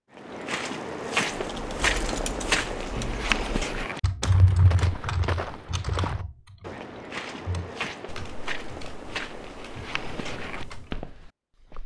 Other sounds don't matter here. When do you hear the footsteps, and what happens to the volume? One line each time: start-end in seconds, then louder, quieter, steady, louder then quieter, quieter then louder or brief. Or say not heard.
0.1-11.8 quieter.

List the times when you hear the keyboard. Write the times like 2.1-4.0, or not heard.
1.5-11.0.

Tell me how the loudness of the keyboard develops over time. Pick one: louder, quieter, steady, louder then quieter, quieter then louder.
louder then quieter.